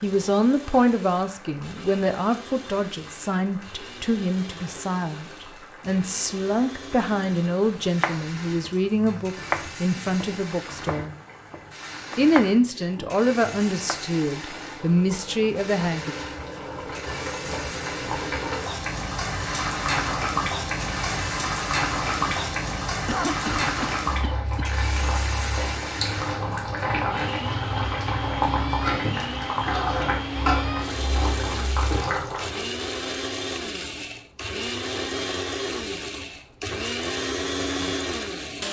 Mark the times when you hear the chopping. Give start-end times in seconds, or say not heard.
7.8-14.1.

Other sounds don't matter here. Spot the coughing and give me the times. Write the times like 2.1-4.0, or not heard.
23.1-24.8.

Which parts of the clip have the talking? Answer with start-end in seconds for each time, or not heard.
0.0-11.2, 12.2-16.1.